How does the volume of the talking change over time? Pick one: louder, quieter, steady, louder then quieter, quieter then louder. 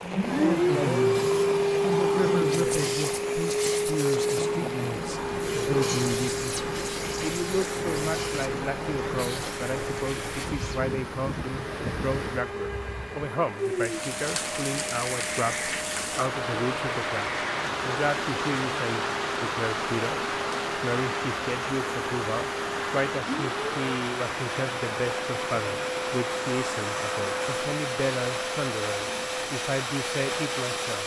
steady.